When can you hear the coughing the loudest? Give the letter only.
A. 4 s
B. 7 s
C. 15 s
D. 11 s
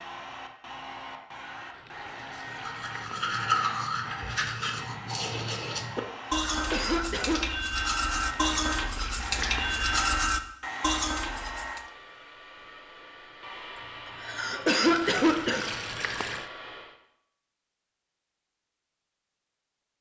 C.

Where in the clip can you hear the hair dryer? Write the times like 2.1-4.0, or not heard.
0.0-16.9.